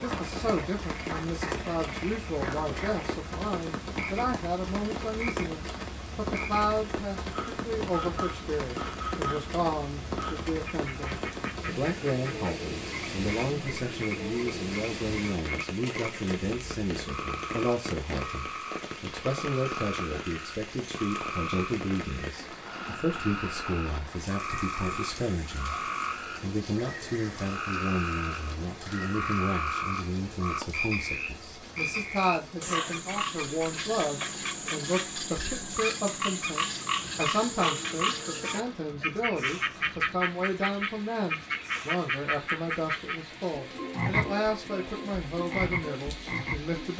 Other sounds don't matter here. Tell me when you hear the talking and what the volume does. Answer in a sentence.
The talking can be heard from 0.0 to 46.9 s, at a steady volume.